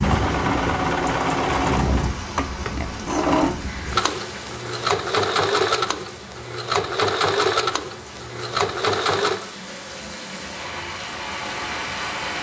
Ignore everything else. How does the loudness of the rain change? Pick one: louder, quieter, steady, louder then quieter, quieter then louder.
quieter then louder.